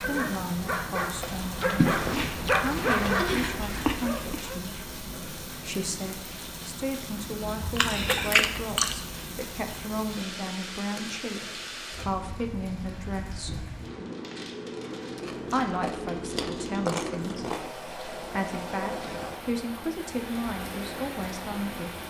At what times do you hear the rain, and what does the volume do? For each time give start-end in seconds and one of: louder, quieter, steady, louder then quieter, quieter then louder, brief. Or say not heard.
0.0-22.0 steady.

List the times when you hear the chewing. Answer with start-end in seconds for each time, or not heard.
1.8-4.5, 7.6-9.1, 15.2-17.7.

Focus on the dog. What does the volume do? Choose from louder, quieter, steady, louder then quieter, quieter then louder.
louder then quieter.